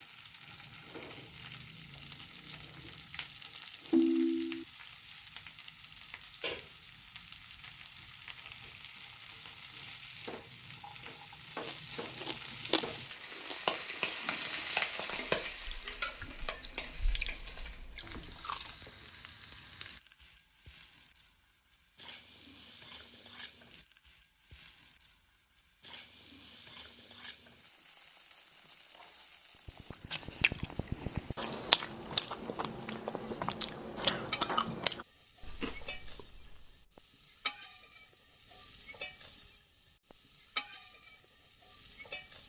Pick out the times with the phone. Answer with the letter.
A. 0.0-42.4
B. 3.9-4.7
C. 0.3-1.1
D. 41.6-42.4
B.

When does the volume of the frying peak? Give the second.
15 s.